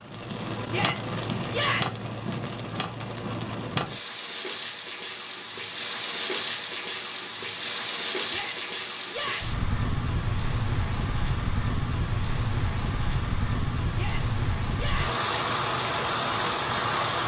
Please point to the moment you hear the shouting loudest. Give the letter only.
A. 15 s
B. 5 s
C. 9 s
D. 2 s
D.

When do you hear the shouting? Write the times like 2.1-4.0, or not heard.
0.7-2.1, 8.2-9.6, 13.9-15.2.